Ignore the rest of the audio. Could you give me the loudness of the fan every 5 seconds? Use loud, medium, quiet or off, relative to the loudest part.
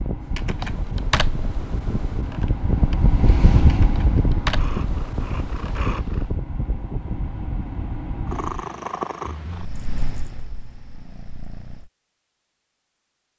loud, medium, off.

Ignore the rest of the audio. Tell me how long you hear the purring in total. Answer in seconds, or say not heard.
7 s.